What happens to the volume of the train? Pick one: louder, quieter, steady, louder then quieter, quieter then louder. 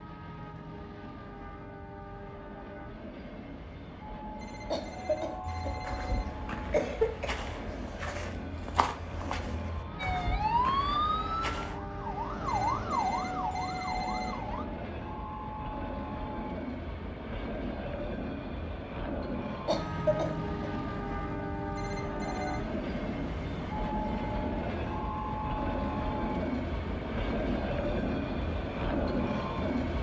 louder.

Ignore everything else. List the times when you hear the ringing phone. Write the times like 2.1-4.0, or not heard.
4.3-6.3, 12.4-14.4, 21.8-22.6.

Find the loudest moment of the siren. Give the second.
11 s.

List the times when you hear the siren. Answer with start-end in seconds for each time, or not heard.
9.9-14.7.